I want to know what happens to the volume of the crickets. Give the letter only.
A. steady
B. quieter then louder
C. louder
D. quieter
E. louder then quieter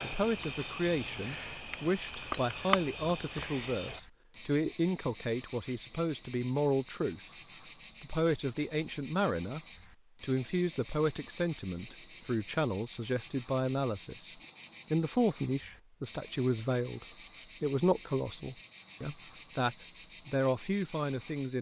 A.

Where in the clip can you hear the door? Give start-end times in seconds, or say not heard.
not heard.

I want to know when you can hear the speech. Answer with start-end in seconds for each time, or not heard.
0.0-7.2, 8.0-9.6, 10.2-21.5.